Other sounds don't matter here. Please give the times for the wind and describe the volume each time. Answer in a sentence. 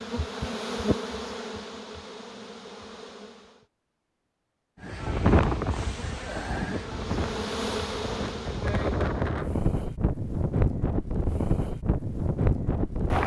The wind can be heard from 4.8 to 13.2 s, getting quieter then louder.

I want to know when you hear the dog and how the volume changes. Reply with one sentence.
The dog can't be heard in this clip.